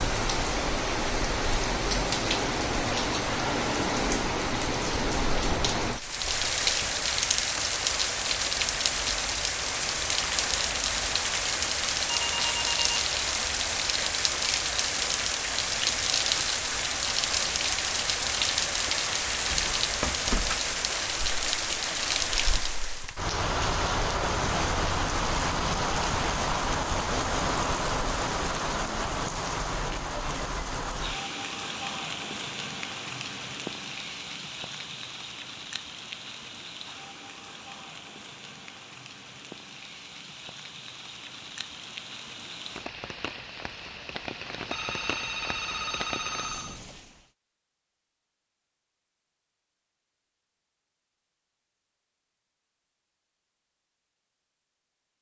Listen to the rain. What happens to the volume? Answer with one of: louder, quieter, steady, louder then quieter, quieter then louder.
quieter.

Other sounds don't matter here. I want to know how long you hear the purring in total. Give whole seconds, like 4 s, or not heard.
not heard.